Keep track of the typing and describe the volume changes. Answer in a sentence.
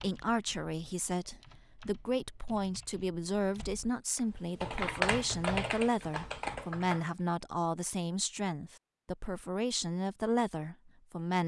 The loudness of the typing goes up.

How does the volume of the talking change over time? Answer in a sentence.
The volume of the talking stays about the same.